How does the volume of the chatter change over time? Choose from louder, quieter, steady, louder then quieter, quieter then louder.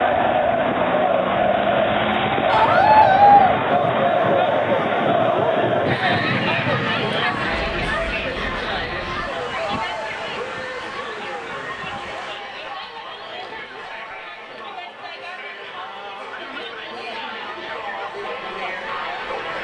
quieter.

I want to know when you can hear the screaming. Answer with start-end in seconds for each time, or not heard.
2.5-3.6.